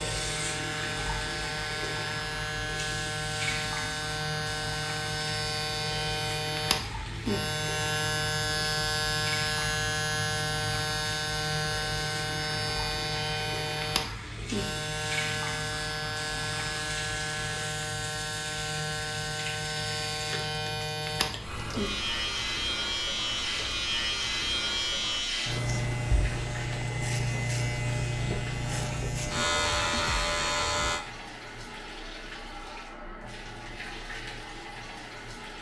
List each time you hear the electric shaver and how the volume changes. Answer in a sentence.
You can hear the electric shaver from 0.0 to 31.1 s, at a steady volume.